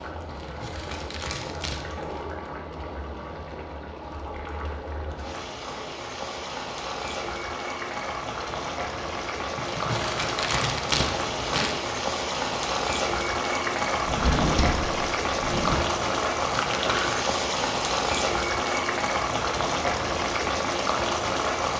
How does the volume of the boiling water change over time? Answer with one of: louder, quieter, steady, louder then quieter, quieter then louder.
louder.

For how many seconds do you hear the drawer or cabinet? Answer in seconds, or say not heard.
3 s.